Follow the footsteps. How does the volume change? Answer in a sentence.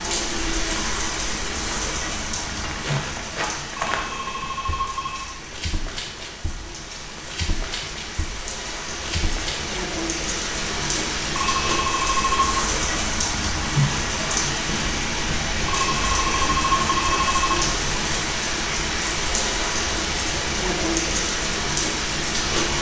The loudness of the footsteps goes down, then up.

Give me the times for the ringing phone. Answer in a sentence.
You can hear the ringing phone from 3.8 to 5.3 s, from 11.3 to 12.6 s and from 15.7 to 17.6 s.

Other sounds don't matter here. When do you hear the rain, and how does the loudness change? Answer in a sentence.
The rain can be heard from 0.0 to 22.7 s, getting quieter then louder.